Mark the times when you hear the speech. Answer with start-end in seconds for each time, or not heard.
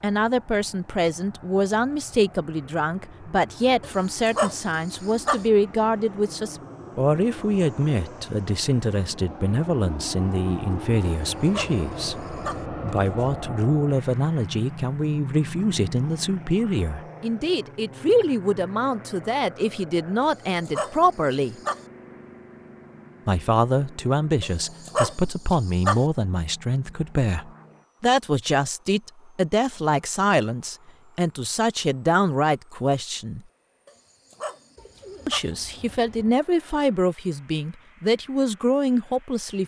0.0-21.6, 23.2-33.4, 35.2-39.6.